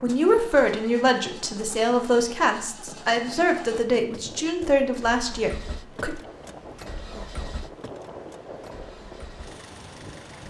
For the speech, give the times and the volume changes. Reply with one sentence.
You can hear the speech from 0.0 to 6.2 s, at a steady volume.